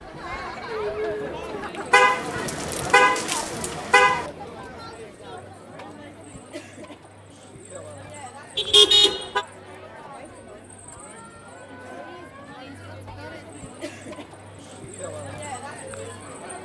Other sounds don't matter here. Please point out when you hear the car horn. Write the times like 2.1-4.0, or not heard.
1.9-4.2, 8.6-9.4.